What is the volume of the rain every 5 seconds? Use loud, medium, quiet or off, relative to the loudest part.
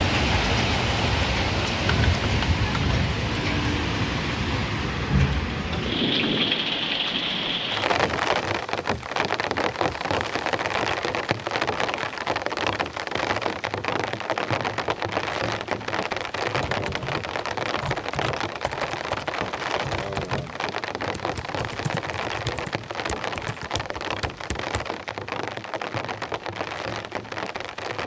loud, loud, loud, loud, medium, medium.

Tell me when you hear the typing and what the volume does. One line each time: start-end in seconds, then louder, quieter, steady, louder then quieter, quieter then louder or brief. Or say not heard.
16.5-24.9 quieter.